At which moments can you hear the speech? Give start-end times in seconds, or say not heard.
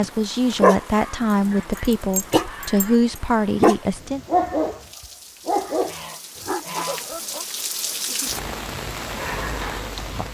0.0-4.2.